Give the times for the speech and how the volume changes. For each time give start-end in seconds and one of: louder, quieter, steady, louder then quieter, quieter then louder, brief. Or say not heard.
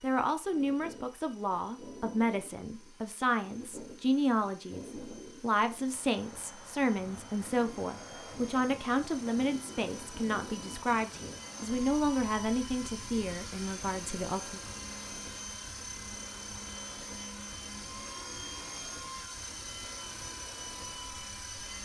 0.0-14.6 steady.